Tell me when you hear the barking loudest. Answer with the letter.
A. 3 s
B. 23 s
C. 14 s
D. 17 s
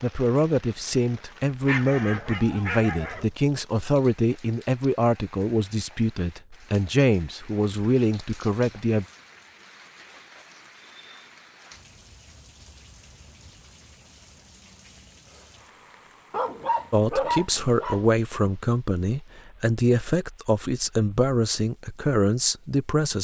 D.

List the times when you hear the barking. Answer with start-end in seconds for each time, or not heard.
1.6-3.2, 16.3-18.1.